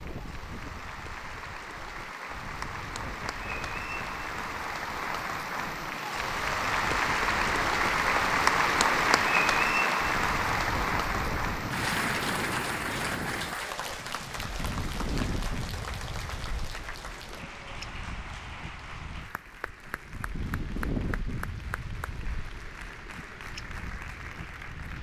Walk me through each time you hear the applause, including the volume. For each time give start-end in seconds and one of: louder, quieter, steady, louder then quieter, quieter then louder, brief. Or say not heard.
0.0-24.9 louder then quieter.